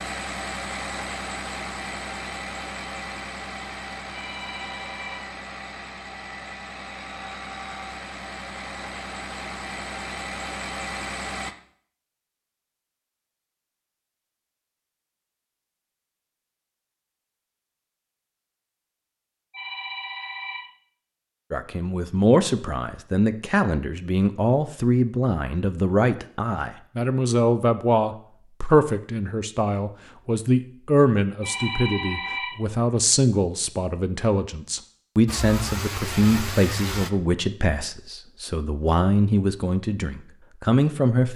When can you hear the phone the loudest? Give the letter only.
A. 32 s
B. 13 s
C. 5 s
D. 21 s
A.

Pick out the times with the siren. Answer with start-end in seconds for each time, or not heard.
not heard.